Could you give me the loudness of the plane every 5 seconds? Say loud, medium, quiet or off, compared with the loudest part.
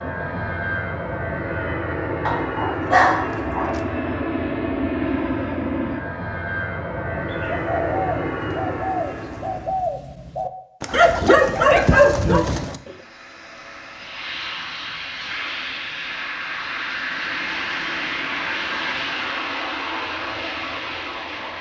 loud, loud, medium, loud, loud.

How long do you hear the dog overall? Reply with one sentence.
The dog can be heard for 3 seconds in total.